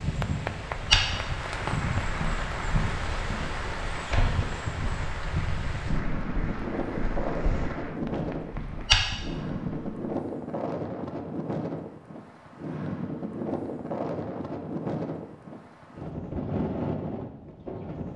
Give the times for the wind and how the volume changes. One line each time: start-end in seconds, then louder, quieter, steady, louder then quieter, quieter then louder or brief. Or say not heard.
0.0-18.1 steady.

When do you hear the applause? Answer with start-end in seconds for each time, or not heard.
0.0-8.9.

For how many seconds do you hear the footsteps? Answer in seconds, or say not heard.
9 s.